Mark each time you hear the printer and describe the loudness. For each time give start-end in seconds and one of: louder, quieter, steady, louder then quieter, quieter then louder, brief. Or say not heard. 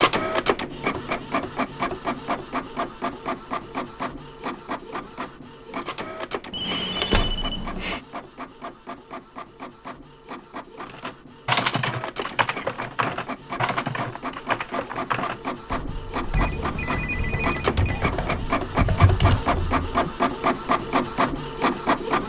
0.0-22.2 quieter then louder.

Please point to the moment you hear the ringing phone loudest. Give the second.
7 s.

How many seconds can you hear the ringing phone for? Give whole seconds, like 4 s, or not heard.
3 s.